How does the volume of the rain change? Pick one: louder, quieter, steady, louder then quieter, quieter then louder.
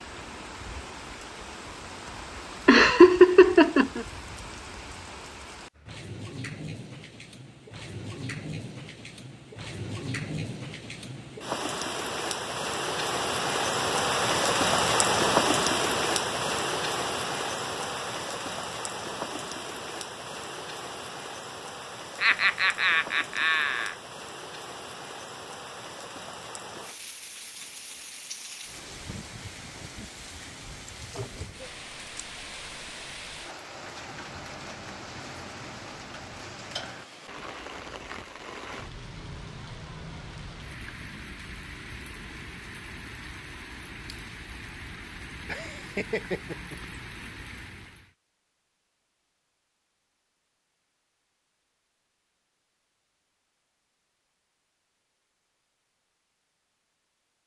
louder then quieter.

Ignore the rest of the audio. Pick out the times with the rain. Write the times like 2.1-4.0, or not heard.
0.0-48.1.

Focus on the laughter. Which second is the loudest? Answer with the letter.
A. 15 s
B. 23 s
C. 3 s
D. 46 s
C.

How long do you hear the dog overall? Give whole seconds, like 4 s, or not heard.
not heard.